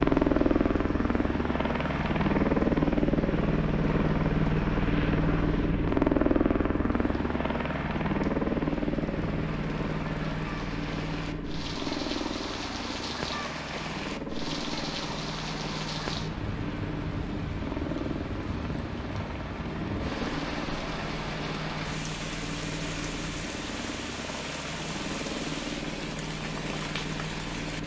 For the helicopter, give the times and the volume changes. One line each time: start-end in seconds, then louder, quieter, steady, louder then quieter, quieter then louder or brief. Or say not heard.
0.0-27.8 quieter.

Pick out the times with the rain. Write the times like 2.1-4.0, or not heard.
0.1-27.8.